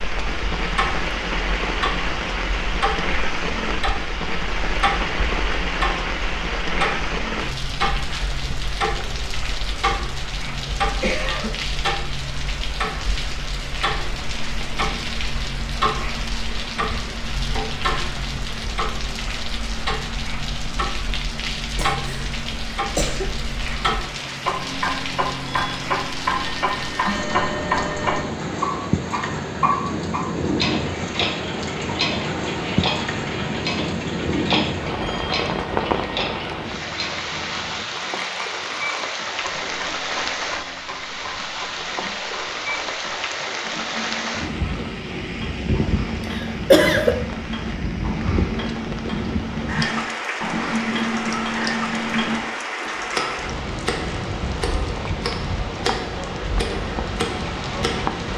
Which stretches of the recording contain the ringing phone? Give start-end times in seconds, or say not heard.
not heard.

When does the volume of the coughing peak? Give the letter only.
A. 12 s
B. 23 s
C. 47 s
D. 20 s
C.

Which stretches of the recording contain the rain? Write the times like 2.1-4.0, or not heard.
0.0-58.3.